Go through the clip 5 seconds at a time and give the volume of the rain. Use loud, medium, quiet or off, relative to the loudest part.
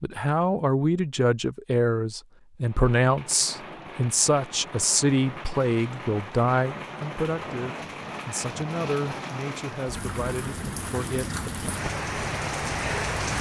medium, medium, loud.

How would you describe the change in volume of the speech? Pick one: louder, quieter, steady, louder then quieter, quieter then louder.
quieter.